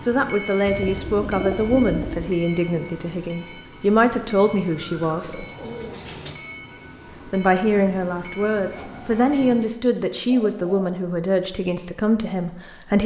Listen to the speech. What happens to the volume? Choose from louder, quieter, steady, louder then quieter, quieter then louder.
steady.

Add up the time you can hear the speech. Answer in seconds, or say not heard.
11 s.